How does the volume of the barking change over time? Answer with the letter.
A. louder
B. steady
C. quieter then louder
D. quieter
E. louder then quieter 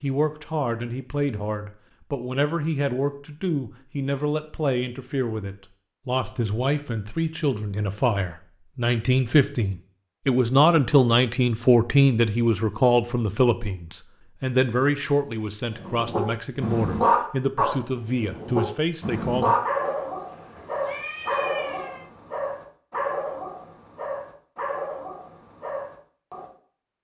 D.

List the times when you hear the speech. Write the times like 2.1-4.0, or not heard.
0.0-19.6.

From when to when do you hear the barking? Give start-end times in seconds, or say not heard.
15.7-26.5.